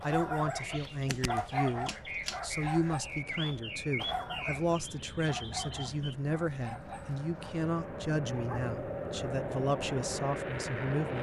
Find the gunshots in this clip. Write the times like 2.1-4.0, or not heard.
1.1-2.4.